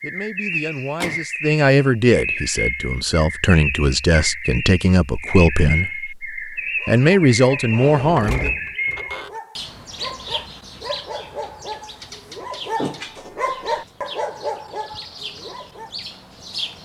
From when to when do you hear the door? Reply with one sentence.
You can hear the door from 0.5 to 1.2 s, from 7.8 to 9.4 s and from 12.6 to 13.7 s.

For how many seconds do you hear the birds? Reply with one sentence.
You can hear the birds for 17 seconds altogether.